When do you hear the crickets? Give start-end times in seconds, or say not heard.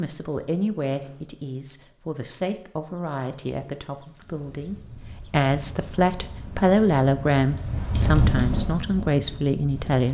0.0-6.4.